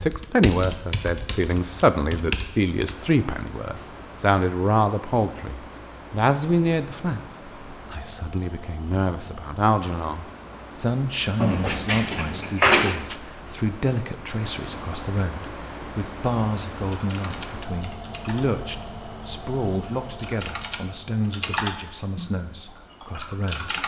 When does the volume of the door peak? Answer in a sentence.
The volume of the door peaks at 13 seconds.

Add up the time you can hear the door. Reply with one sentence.
You can hear the door for 2 seconds altogether.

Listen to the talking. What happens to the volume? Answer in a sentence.
The loudness of the talking goes down.